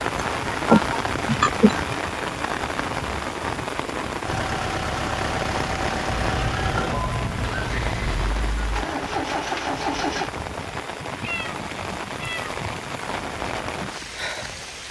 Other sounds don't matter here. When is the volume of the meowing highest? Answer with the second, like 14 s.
1 s.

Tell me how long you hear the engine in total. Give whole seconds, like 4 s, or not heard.
6 s.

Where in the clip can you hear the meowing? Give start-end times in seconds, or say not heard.
0.5-1.8, 6.0-8.1, 11.2-12.6.